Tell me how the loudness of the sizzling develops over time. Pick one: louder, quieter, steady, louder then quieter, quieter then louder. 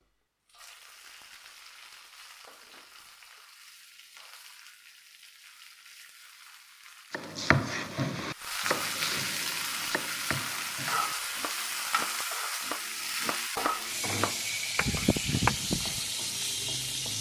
louder.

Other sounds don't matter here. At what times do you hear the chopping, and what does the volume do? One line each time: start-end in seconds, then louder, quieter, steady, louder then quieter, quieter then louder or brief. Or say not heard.
7.1-16.0 quieter then louder.